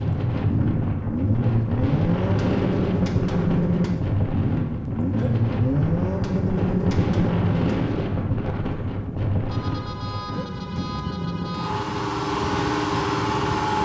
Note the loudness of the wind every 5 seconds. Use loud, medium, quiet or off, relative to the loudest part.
loud, loud, medium.